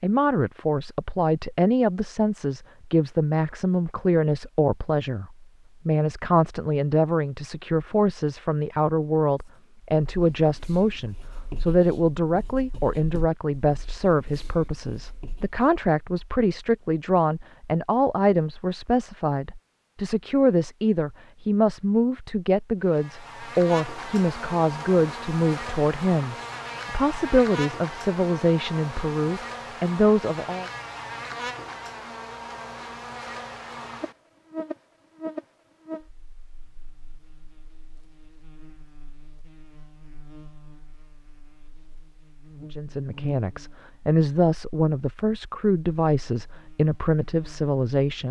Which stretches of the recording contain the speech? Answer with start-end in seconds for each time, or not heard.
0.0-30.7, 42.7-48.2.